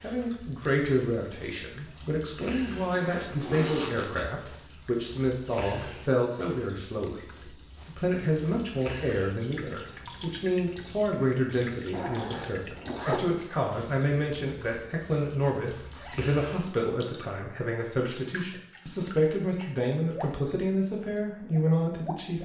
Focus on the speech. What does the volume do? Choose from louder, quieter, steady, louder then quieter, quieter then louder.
steady.